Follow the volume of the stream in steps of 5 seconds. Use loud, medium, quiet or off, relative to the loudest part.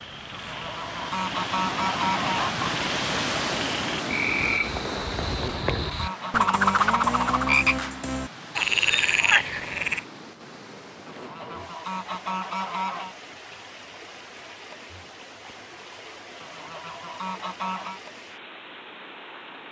loud, medium, quiet, quiet.